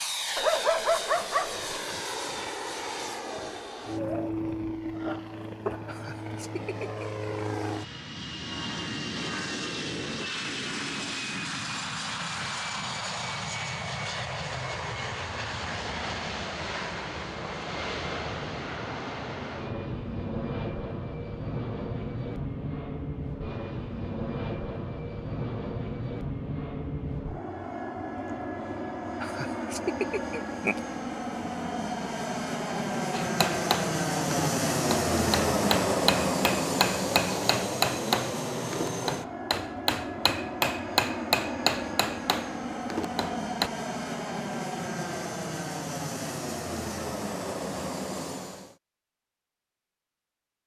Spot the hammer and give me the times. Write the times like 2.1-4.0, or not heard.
33.1-43.7.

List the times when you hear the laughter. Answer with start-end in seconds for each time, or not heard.
5.8-7.2, 29.2-30.8.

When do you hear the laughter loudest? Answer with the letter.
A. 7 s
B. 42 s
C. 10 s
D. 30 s
D.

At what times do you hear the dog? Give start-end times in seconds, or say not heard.
0.3-1.6.